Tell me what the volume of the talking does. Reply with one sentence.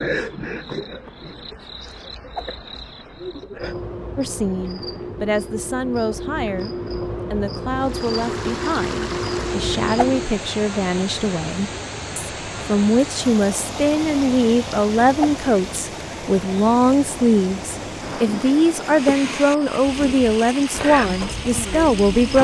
The loudness of the talking goes up.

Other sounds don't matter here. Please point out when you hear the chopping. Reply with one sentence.
The chopping can't be heard in this clip.